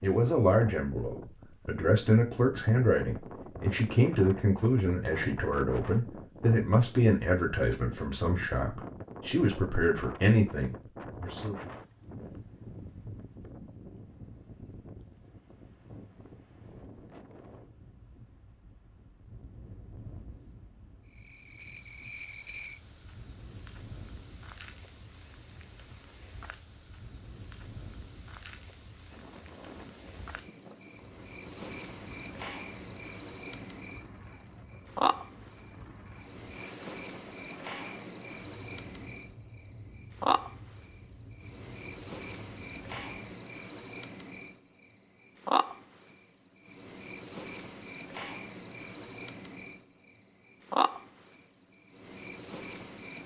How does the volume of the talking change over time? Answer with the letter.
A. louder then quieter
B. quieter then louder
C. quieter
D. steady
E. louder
D.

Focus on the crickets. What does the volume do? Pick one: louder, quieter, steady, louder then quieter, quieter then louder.
steady.